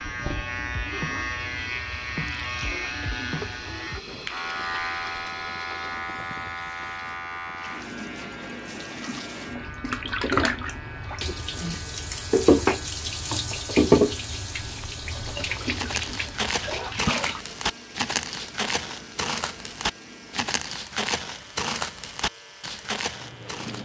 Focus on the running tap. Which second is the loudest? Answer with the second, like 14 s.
14 s.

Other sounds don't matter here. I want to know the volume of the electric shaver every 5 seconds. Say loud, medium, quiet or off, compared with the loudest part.
loud, loud, quiet, quiet, quiet.